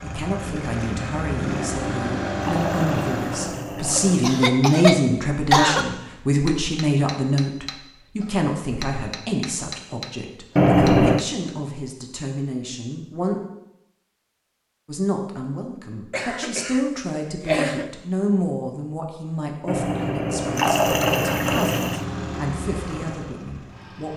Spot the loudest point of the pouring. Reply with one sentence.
The volume of the pouring peaks at 11 seconds.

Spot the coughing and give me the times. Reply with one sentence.
You can hear the coughing from 4.2 to 5.8 s, from 16.1 to 16.8 s and from 17.4 to 17.9 s.